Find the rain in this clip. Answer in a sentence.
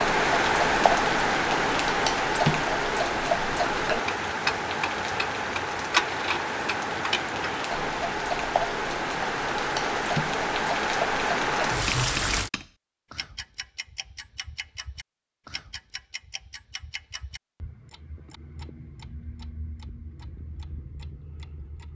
You can hear the rain from 0.0 to 12.5 s.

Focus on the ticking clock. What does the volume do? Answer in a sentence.
The volume of the ticking clock goes down.